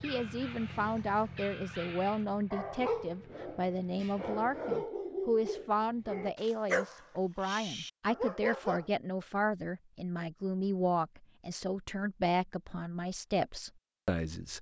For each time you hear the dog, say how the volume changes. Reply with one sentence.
You can hear the dog from 0.0 to 8.9 s, getting louder.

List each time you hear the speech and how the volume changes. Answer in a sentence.
The speech can be heard from 0.0 to 14.5 s, at a steady volume.